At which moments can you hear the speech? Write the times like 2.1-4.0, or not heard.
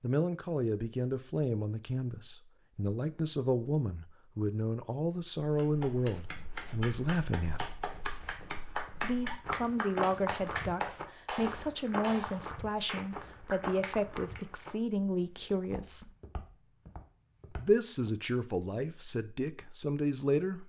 0.0-7.8, 9.0-16.1, 17.6-20.6.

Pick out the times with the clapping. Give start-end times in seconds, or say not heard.
5.5-14.4.